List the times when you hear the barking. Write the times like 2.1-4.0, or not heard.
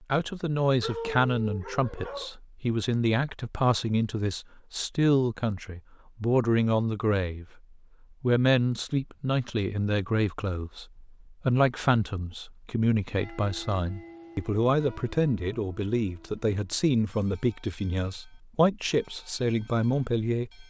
0.8-2.3.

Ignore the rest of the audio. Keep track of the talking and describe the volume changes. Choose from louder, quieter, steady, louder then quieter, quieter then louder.
steady.